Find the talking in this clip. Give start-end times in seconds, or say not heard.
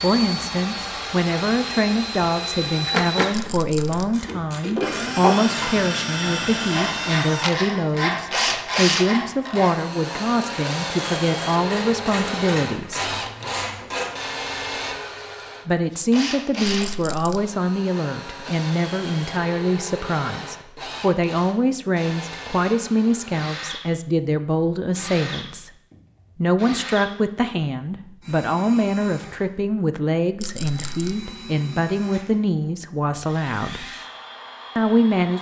0.0-13.2, 15.7-25.7, 26.4-33.9, 34.8-35.3.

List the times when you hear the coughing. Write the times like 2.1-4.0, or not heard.
not heard.